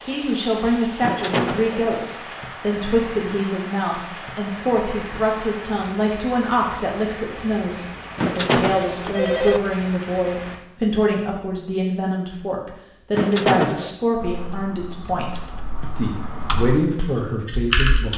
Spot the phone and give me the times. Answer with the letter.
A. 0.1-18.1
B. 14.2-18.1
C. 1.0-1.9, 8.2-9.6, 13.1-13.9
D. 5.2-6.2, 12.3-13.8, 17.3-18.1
C.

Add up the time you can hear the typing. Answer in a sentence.
The typing can be heard for 4 seconds in total.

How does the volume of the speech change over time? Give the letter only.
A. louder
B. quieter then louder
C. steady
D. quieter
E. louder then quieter
C.